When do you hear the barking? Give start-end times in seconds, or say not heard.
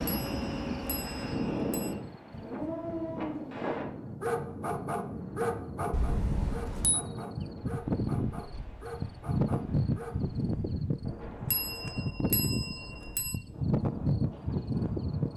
2.3-10.2.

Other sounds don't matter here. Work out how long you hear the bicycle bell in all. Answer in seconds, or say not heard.
5 s.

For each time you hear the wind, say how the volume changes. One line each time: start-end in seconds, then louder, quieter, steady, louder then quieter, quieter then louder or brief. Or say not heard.
0.0-15.3 quieter.